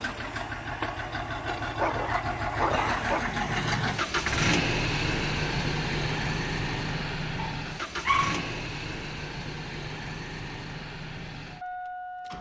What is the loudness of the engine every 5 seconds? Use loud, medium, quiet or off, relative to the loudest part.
loud, loud, medium.